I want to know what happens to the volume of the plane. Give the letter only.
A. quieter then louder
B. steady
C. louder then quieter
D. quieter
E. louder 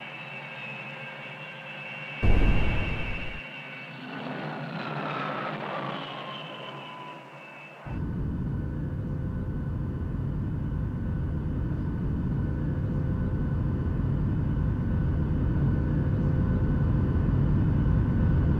E.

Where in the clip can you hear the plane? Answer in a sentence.
The plane can be heard from 0.0 to 18.5 s.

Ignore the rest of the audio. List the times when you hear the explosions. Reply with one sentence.
The explosions can be heard from 2.2 to 3.4 s.